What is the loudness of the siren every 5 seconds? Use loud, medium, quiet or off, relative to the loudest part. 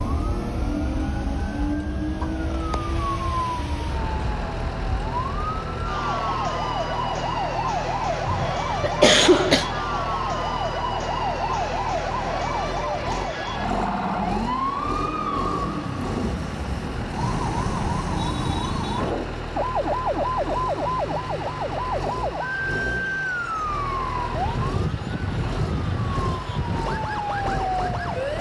medium, loud, loud, loud, loud, loud.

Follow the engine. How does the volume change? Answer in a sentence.
The volume of the engine stays about the same.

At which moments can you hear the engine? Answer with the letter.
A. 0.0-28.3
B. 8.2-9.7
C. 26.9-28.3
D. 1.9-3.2
A.